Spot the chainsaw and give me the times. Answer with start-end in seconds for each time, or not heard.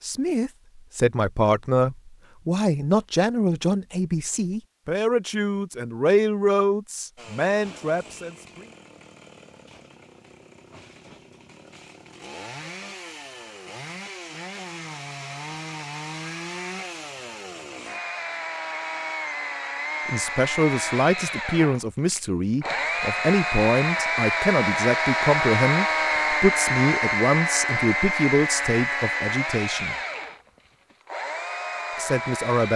7.2-32.7.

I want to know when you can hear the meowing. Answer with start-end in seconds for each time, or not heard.
not heard.